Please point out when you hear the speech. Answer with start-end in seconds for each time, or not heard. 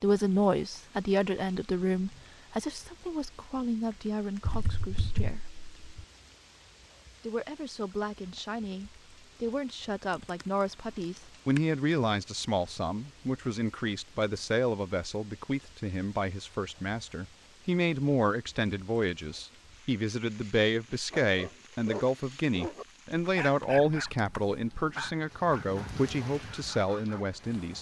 0.0-5.5, 7.2-27.7.